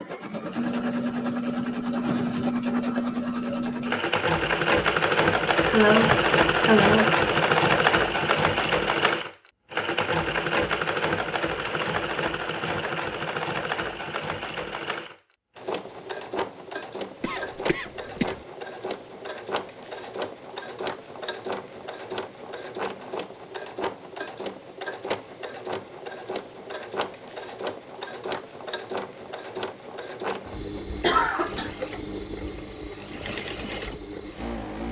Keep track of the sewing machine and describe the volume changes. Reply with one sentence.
The loudness of the sewing machine goes down.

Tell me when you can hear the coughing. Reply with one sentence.
You can hear the coughing from 5.2 to 7.4 s, from 17.2 to 18.4 s and from 31.0 to 31.7 s.